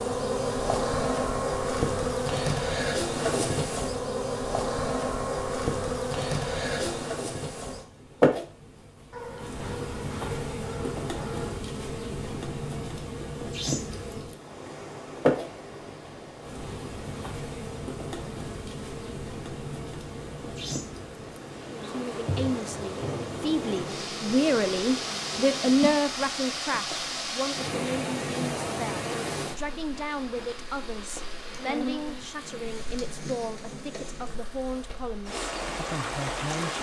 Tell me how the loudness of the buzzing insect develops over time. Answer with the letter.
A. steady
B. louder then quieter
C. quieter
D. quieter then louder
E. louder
C.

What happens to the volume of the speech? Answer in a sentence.
The loudness of the speech goes down.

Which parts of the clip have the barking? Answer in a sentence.
The barking can be heard from 9.1 to 11.7 s.